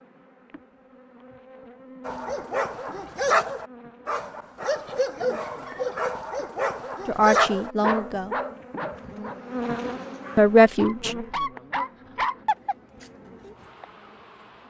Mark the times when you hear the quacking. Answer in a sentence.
The quacking can't be heard in this clip.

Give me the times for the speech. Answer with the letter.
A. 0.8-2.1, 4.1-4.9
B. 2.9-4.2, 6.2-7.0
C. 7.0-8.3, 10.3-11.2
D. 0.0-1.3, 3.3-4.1
C.